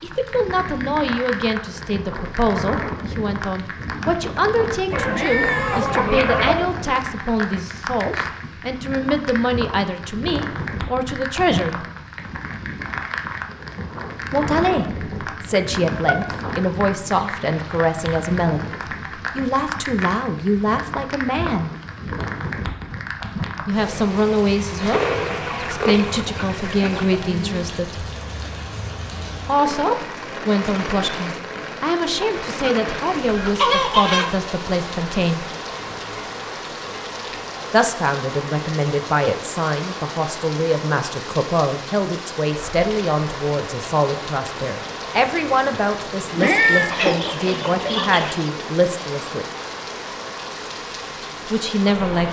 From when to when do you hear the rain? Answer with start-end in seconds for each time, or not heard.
0.0-52.2.